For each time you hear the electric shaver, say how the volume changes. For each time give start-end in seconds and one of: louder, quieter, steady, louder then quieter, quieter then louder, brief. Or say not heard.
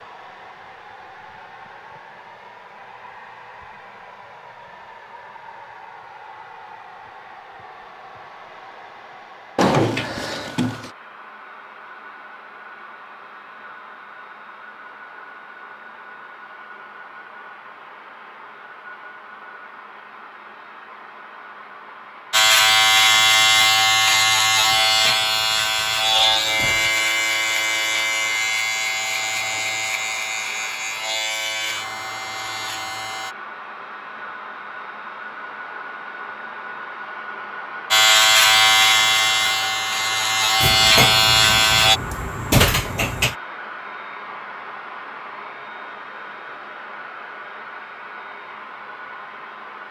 22.3-33.4 quieter
37.9-42.0 quieter then louder.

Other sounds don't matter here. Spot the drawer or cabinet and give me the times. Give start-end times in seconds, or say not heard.
9.6-10.9, 24.6-27.1, 40.6-43.4.